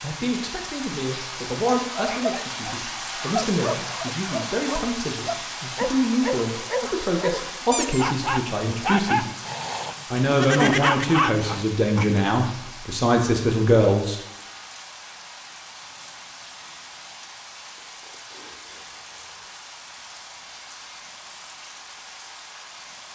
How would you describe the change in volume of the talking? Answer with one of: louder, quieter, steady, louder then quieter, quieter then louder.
louder.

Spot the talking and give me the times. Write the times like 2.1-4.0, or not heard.
0.0-9.2, 10.1-14.2.